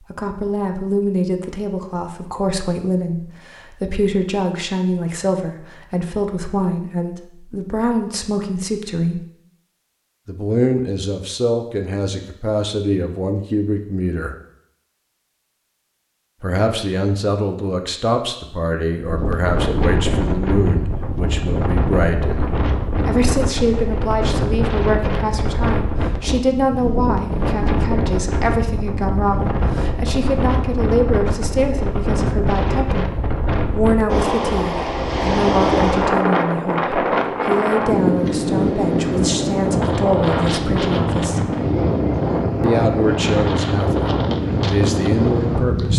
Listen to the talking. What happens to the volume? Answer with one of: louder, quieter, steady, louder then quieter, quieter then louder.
steady.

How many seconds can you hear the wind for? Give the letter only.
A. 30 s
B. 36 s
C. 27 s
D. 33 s
C.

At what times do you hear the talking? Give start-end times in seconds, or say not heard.
0.1-9.2, 10.2-14.3, 16.4-41.5, 42.6-45.9.